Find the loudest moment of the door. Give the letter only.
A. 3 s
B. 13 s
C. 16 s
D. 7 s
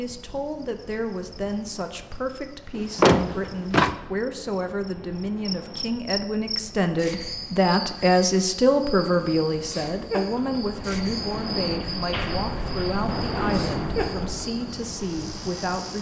A.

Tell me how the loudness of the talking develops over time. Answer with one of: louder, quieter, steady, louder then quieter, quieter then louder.
louder then quieter.